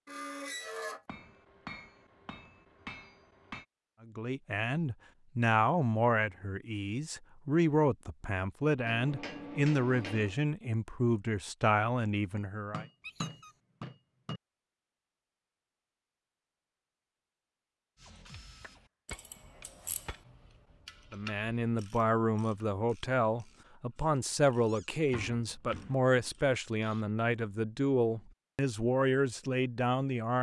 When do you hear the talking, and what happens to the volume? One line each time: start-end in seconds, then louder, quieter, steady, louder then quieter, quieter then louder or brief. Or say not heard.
4.0-12.8 steady
21.1-30.3 steady.